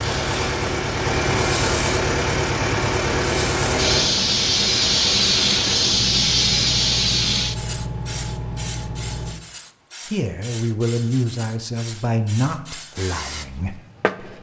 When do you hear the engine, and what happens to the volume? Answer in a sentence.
The engine can be heard from 0.0 to 9.4 s, getting quieter.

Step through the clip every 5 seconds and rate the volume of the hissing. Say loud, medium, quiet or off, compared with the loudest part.
loud, loud, quiet.